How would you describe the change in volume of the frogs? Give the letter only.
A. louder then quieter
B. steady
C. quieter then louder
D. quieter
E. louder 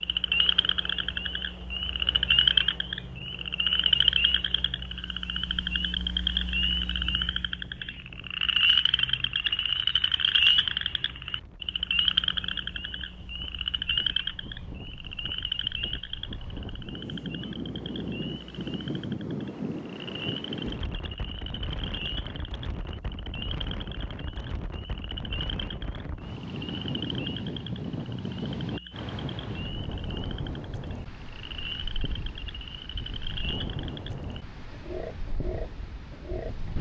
D.